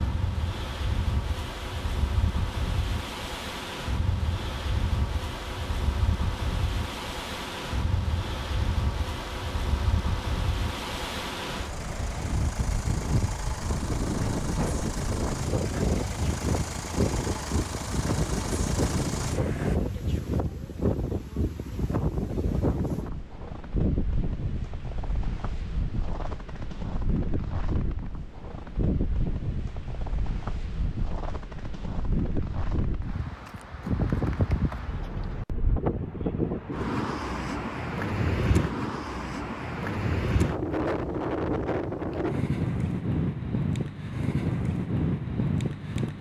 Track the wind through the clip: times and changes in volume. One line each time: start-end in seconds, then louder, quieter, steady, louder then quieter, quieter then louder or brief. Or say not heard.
0.0-46.1 louder.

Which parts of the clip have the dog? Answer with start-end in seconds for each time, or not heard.
not heard.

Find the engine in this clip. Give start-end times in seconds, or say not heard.
0.0-19.8.